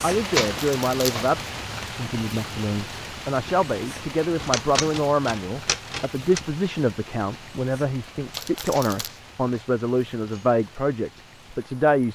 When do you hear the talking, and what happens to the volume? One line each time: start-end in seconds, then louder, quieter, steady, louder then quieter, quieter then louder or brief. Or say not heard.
0.0-12.0 steady.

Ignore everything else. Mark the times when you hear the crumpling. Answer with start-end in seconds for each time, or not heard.
0.5-1.3, 8.3-9.1.